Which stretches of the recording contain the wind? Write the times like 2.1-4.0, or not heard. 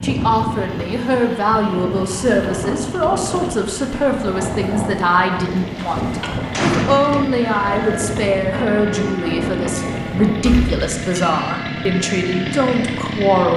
0.0-10.7.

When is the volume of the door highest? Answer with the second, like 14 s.
7 s.